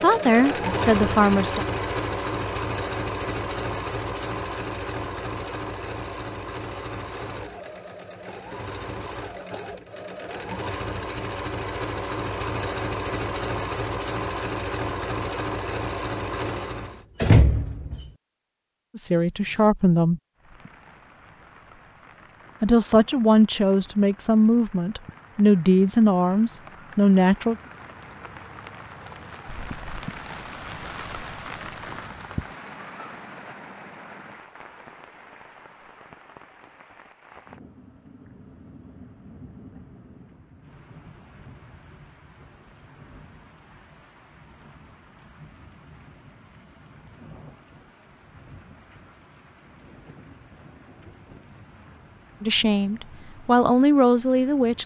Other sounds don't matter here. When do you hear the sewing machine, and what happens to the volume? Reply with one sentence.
The sewing machine can be heard from 0.0 to 17.1 s, getting quieter then louder.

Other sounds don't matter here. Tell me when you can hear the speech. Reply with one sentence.
You can hear the speech from 0.0 to 1.6 s, from 18.9 to 20.2 s, from 22.6 to 27.6 s and from 52.4 to 54.8 s.